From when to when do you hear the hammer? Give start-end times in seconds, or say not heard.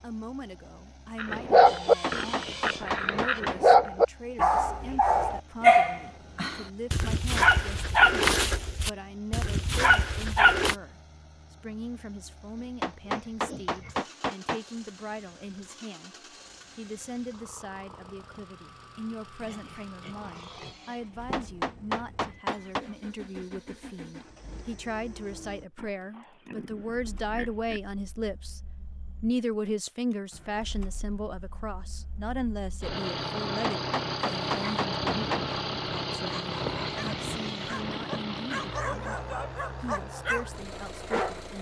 2.0-3.8, 12.8-14.6, 21.3-22.9, 33.6-35.5.